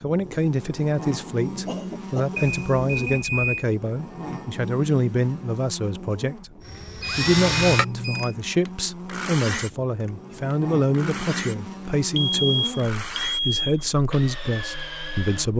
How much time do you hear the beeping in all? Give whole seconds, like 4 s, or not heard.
4 s.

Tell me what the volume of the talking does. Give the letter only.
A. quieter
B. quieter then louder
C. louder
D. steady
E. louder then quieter
D.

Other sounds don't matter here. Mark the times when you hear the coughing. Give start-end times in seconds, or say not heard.
1.6-2.4.